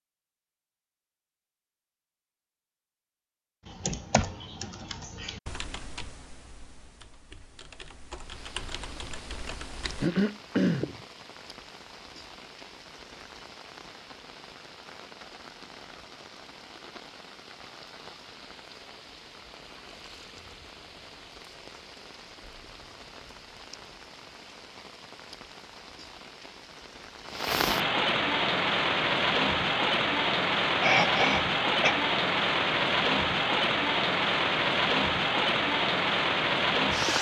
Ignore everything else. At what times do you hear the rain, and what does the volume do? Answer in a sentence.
The rain can be heard from 8.2 to 37.1 s, getting louder.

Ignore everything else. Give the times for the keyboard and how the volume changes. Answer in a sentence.
You can hear the keyboard from 3.6 to 10.1 s, getting quieter then louder.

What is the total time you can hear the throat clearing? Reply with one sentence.
The throat clearing can be heard for 2 seconds in total.